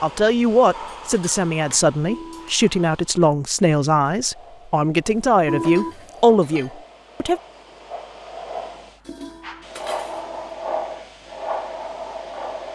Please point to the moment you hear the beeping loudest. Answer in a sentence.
The loudest moment of the beeping is at 6 seconds.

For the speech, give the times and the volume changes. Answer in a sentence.
You can hear the speech from 0.0 to 7.4 s, at a steady volume.